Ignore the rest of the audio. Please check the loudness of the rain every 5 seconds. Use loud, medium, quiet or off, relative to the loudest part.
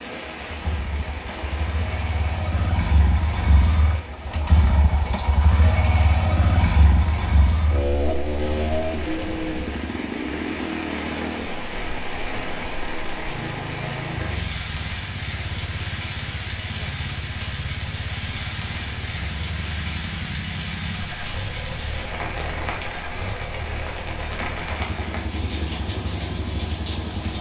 medium, medium, loud, loud, loud, loud.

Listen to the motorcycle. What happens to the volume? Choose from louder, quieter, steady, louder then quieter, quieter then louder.
quieter.